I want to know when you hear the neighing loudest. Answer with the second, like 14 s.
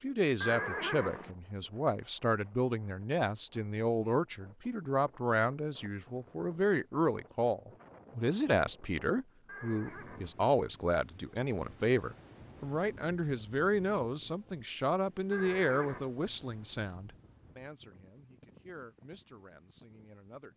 1 s.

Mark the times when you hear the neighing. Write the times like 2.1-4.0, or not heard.
0.4-1.4, 9.4-10.4, 15.3-16.1.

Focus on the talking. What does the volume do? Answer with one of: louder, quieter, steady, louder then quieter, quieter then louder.
quieter.